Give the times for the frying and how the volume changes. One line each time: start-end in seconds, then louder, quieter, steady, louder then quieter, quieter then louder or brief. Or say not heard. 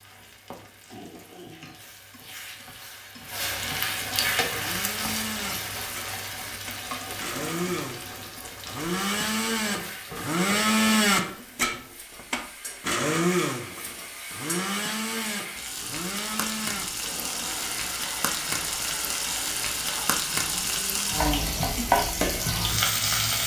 0.0-23.4 quieter then louder.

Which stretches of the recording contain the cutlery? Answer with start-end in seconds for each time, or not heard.
not heard.